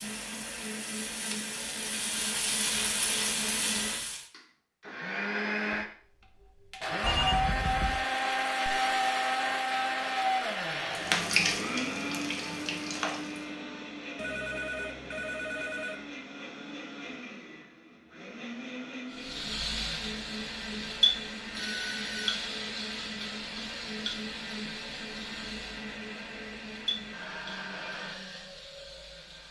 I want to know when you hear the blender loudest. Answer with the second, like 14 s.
9 s.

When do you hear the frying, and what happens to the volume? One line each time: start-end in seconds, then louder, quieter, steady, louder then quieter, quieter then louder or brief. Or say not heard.
0.0-4.2 louder
10.9-13.5 brief
19.1-29.4 quieter.